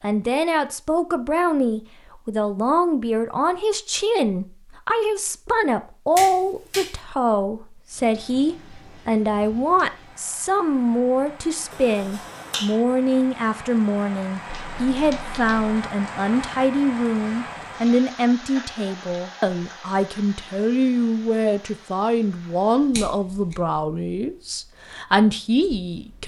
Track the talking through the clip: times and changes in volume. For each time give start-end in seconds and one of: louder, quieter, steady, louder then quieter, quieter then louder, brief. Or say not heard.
0.0-26.2 steady.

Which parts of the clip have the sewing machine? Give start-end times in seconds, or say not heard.
not heard.